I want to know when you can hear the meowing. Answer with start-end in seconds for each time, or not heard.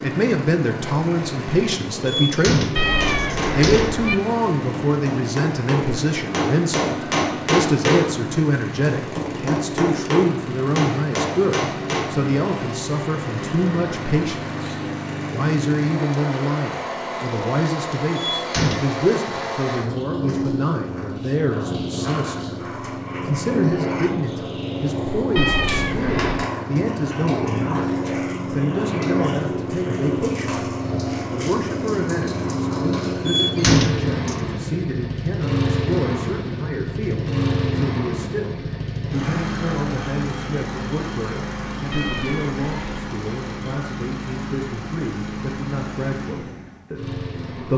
2.8-4.2, 25.4-26.5, 41.9-43.1.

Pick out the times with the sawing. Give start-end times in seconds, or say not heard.
not heard.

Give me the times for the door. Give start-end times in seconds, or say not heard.
2.0-4.0, 18.1-18.9, 33.2-34.4.